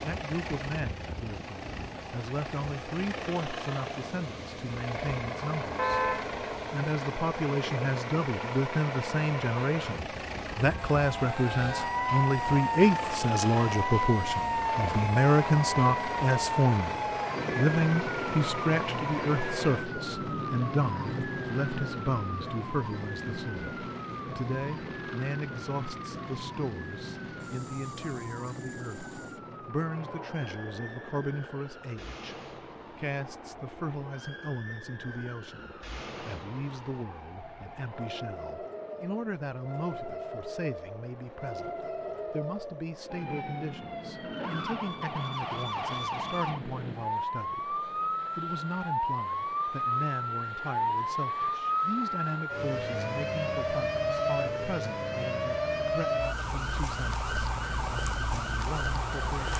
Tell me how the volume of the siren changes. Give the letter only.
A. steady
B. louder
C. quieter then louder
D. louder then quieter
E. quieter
C.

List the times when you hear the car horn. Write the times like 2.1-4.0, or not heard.
5.8-6.3.